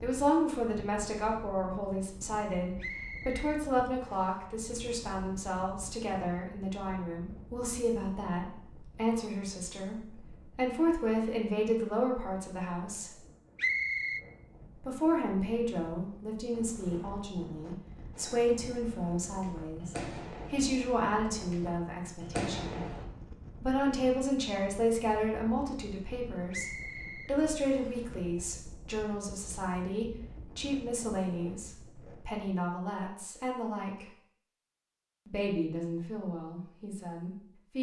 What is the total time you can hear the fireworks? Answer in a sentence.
The fireworks can be heard for 5 seconds in total.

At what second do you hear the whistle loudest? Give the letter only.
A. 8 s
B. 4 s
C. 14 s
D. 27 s
C.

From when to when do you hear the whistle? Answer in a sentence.
You can hear the whistle from 2.8 to 4.3 s, from 13.6 to 14.2 s and from 26.5 to 28.1 s.